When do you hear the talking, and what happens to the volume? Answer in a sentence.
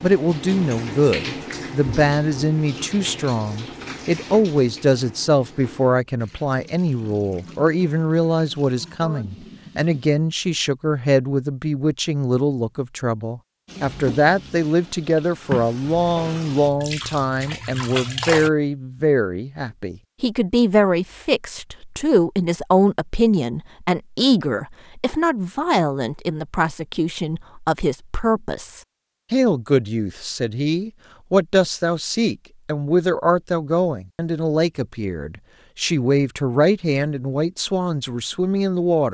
You can hear the talking from 0.0 to 39.1 s, at a steady volume.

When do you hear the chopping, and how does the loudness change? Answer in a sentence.
The chopping can't be heard in this clip.